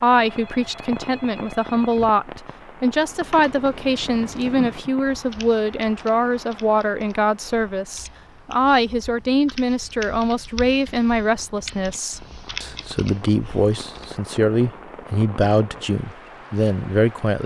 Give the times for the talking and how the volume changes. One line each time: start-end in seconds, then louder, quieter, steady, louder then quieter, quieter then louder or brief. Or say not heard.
0.0-17.4 steady.